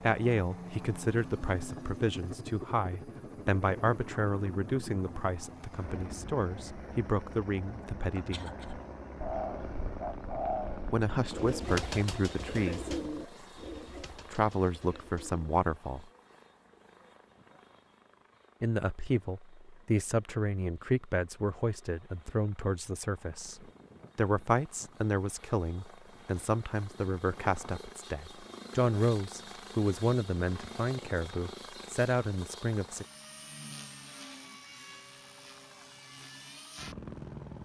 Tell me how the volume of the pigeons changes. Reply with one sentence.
The loudness of the pigeons goes down.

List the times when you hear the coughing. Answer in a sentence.
The coughing can be heard from 8.2 to 8.8 s.